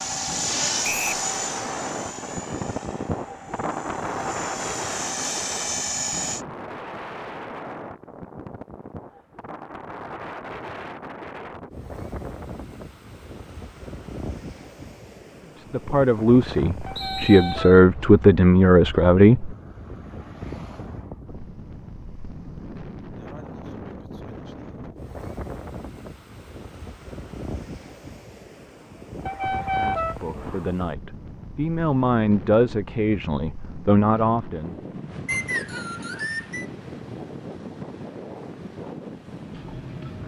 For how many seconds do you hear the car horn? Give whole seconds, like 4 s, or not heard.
3 s.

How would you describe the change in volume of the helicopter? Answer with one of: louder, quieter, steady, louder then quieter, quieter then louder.
quieter then louder.